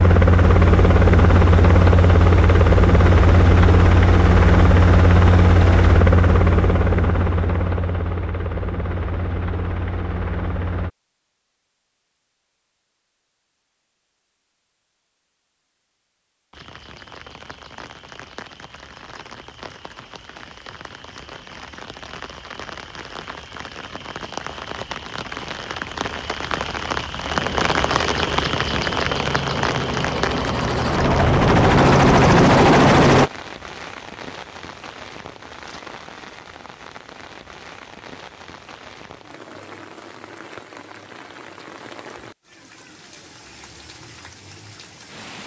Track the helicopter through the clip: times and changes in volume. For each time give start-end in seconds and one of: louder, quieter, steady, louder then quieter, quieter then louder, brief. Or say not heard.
0.0-10.9 quieter
27.3-33.3 louder.